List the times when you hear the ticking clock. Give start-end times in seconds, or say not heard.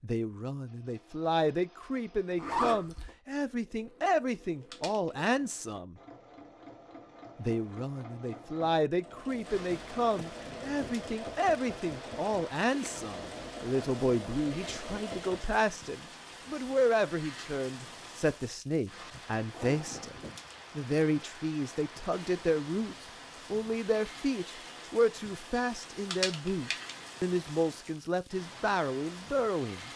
not heard.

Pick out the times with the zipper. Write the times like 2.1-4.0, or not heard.
2.4-3.1, 19.5-20.2.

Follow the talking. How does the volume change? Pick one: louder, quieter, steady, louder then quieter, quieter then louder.
steady.